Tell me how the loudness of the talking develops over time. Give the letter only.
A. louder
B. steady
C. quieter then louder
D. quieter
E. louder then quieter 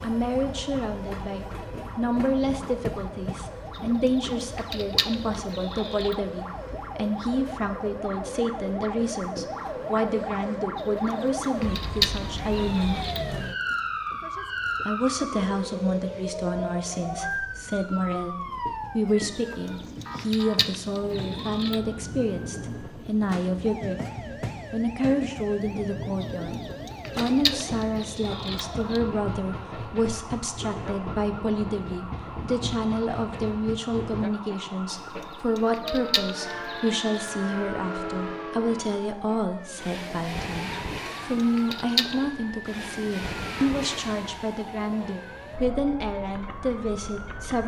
B.